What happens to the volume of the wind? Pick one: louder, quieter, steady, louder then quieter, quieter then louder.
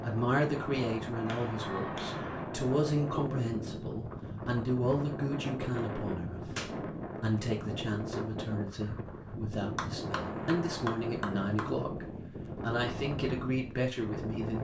steady.